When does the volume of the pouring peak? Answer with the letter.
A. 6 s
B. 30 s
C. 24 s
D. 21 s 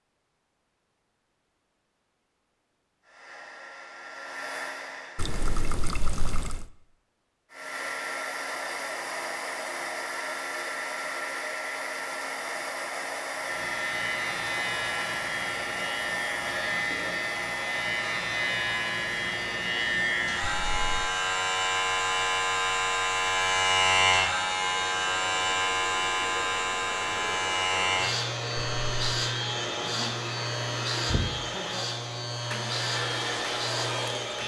A.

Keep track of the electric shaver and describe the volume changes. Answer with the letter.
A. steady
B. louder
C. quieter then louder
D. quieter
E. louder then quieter
E.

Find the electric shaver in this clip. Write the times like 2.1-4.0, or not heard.
13.3-34.4.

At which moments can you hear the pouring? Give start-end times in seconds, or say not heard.
5.2-6.7, 20.4-21.1, 28.6-29.1.